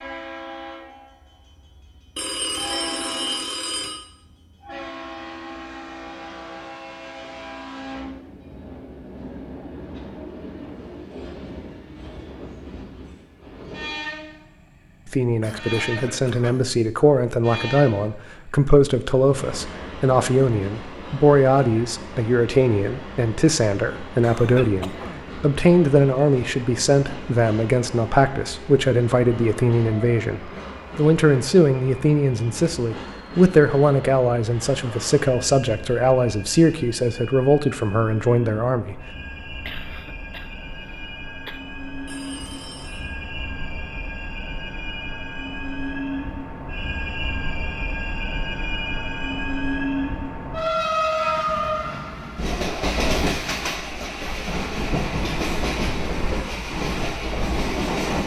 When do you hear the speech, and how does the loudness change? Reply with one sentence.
The speech can be heard from 15.1 to 39.0 s, at a steady volume.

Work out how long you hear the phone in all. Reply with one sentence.
You can hear the phone for 3 seconds altogether.